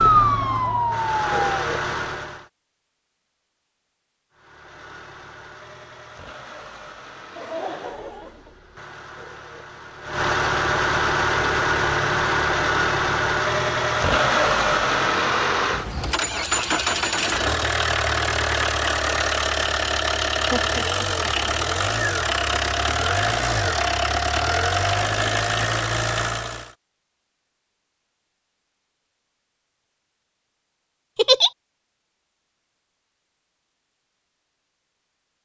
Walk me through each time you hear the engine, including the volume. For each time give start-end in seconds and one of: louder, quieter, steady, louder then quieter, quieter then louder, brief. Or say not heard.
0.0-2.5 brief
4.3-26.8 louder.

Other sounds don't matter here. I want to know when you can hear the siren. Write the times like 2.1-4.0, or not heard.
0.0-1.6.